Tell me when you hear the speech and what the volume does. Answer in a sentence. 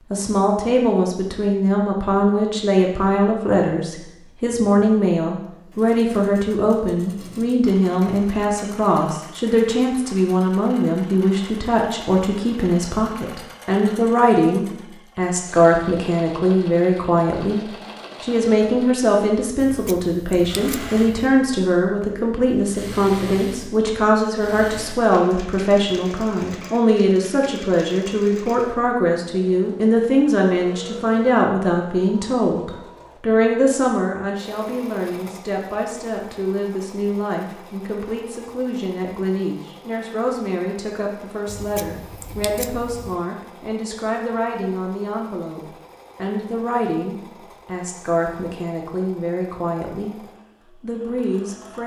The speech can be heard from 0.1 to 51.8 s, getting quieter.